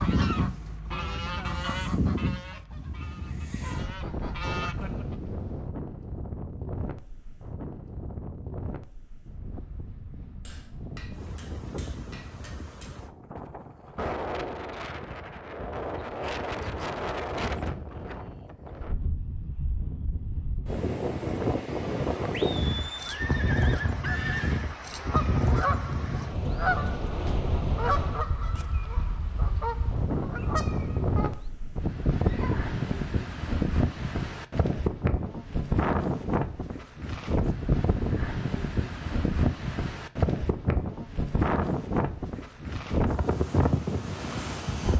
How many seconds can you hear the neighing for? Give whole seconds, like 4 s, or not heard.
3 s.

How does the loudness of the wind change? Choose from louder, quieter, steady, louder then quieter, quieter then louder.
louder.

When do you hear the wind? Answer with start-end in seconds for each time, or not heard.
0.0-44.9.